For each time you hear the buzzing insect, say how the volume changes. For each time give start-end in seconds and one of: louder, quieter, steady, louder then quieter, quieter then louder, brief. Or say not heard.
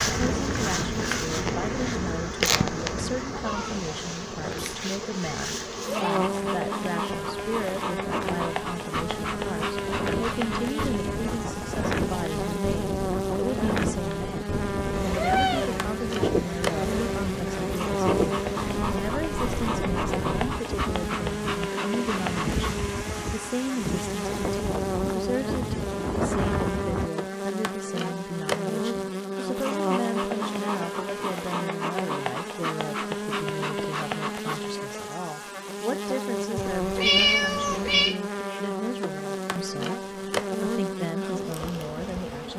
0.0-42.5 steady.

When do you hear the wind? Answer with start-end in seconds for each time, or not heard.
0.0-27.1.